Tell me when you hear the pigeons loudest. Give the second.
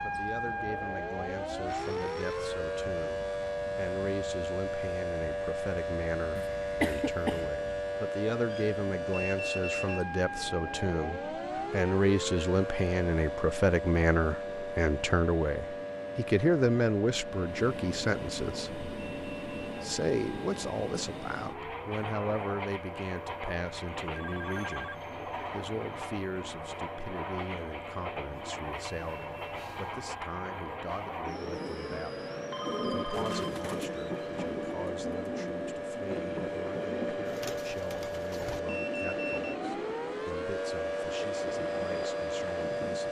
33 s.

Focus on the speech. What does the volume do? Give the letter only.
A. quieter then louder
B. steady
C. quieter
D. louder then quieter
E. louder
D.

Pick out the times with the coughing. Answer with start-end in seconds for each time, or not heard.
6.3-7.5.